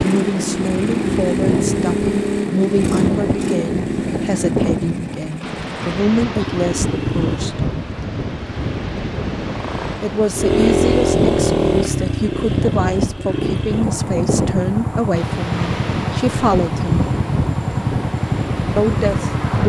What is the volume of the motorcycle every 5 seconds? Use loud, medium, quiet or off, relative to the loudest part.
loud, medium, loud, loud.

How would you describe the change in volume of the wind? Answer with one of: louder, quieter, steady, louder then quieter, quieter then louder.
steady.